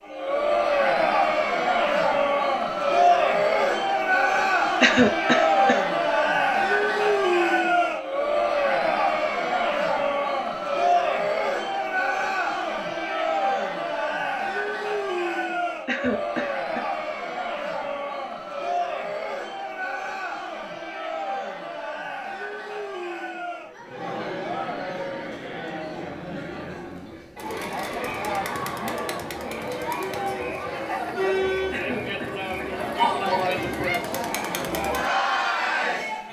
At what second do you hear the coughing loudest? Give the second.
5 s.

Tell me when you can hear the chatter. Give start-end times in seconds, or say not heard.
0.1-36.2.